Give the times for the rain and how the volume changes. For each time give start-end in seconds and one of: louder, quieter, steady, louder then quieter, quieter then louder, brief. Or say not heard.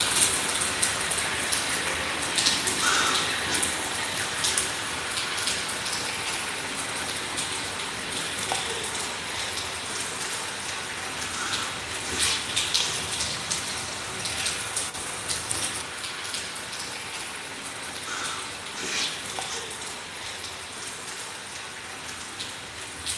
0.0-23.1 quieter.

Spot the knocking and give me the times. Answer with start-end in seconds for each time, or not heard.
not heard.